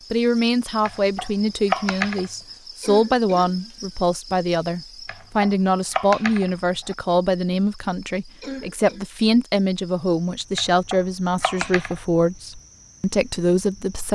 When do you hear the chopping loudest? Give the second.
2 s.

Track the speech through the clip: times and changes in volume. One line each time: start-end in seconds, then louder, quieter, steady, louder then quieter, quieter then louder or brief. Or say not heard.
0.1-14.1 steady.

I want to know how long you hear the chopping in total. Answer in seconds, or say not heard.
5 s.